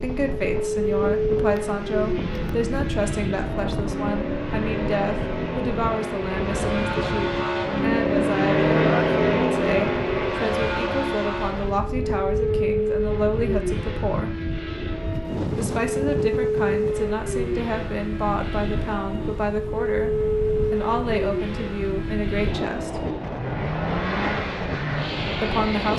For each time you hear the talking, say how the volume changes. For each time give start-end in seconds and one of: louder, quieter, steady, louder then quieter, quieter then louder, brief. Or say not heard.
0.0-14.3 steady
15.4-20.1 steady
20.7-23.0 brief
25.4-25.9 brief.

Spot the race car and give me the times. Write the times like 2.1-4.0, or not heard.
0.0-25.9.